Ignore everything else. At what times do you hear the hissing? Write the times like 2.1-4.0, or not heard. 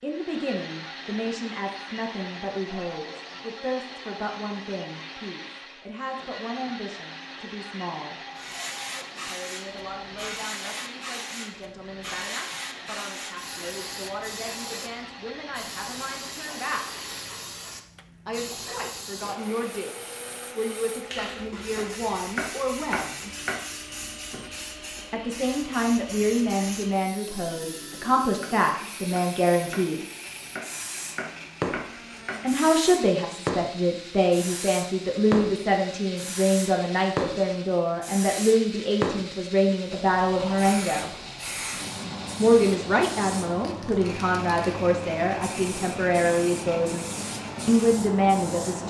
8.3-48.8.